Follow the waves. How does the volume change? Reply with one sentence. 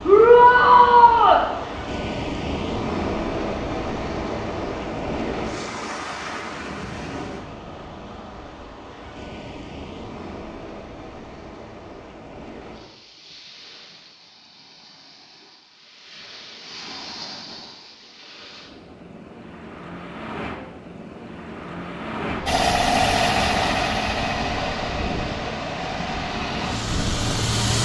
The loudness of the waves goes down, then up.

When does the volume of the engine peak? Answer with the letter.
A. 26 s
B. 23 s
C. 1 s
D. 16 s
B.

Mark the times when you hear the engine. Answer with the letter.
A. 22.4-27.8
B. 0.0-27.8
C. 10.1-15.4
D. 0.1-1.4
A.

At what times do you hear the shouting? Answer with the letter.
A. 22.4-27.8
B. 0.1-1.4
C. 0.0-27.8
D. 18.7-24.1
B.